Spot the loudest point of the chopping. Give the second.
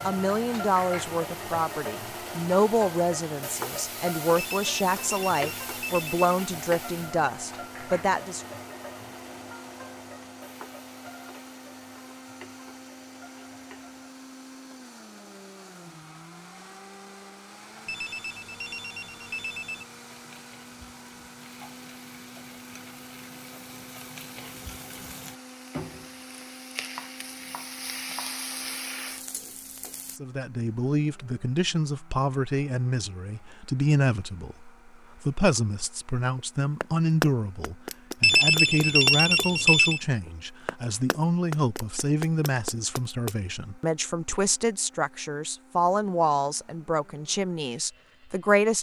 37 s.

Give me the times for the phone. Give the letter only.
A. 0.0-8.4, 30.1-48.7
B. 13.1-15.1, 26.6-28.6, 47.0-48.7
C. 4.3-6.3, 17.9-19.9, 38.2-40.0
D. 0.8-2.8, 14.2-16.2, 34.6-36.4
C.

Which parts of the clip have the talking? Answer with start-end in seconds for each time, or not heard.
0.0-8.4, 30.1-48.7.